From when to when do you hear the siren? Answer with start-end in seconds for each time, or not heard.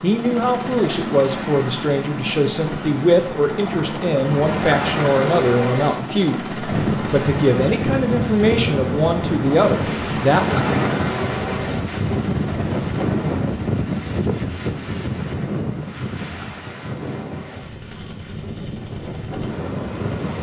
not heard.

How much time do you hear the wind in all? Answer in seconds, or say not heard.
14 s.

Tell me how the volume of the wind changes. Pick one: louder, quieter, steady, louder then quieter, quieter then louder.
quieter.